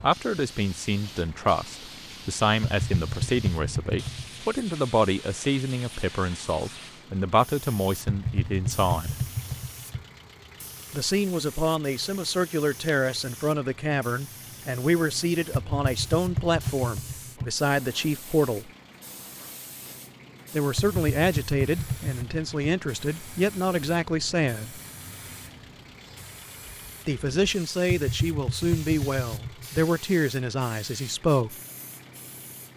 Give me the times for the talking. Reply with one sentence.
You can hear the talking from 0.0 to 9.2 s, from 10.9 to 18.7 s, from 20.5 to 24.8 s and from 27.1 to 31.6 s.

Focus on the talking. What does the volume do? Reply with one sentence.
The loudness of the talking stays about the same.